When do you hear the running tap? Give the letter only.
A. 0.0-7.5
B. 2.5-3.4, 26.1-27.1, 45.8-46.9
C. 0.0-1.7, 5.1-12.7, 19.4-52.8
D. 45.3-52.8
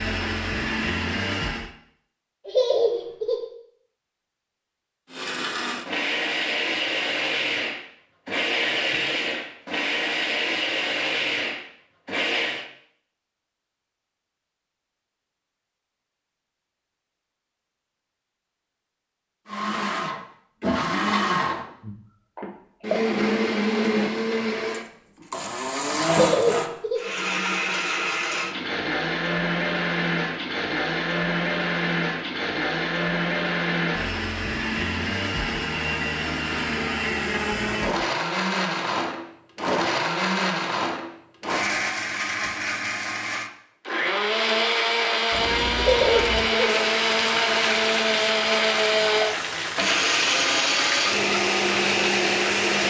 D.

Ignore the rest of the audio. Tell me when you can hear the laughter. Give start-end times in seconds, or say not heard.
2.5-3.4, 26.1-27.1, 45.8-46.9.